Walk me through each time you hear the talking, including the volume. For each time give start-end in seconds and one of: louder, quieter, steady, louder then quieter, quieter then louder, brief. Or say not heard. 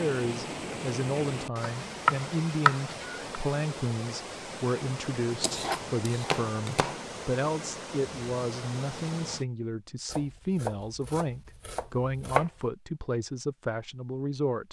0.0-14.6 steady.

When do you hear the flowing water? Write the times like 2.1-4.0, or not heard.
0.0-9.4.